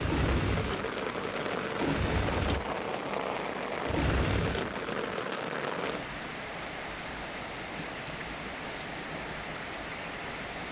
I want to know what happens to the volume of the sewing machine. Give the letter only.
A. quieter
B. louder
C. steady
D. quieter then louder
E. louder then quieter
D.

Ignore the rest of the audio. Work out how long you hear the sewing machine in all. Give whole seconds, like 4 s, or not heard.
5 s.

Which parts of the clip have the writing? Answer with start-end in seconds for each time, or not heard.
not heard.